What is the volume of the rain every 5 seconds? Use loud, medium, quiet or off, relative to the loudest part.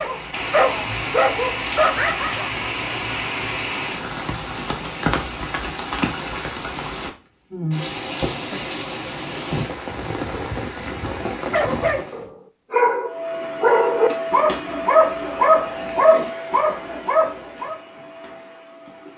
loud, loud, loud, off.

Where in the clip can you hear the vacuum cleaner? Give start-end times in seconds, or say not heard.
13.1-19.1.